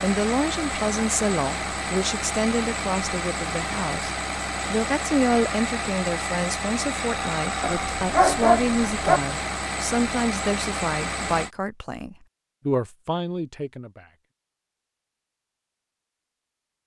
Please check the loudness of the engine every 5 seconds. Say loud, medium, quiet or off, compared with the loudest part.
loud, loud, loud, off.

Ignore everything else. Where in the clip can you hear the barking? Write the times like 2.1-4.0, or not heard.
7.6-9.2.